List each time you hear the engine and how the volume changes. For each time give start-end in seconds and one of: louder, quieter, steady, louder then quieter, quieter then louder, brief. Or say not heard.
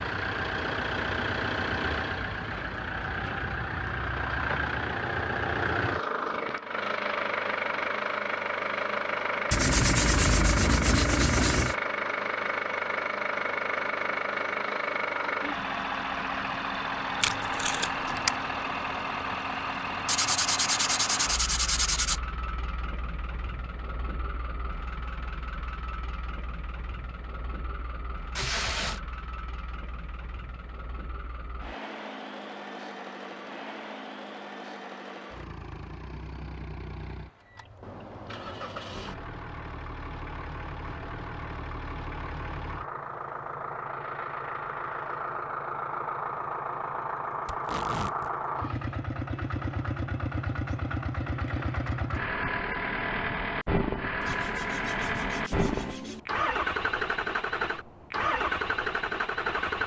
0.0-59.8 quieter then louder.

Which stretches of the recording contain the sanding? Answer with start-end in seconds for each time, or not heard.
9.5-11.8, 20.1-22.2, 54.2-56.2.